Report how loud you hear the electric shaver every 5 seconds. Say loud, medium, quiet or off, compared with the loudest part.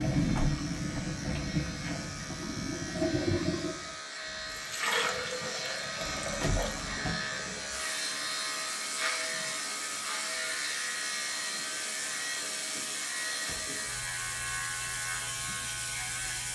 medium, loud, loud, loud.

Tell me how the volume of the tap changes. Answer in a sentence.
The loudness of the tap goes down.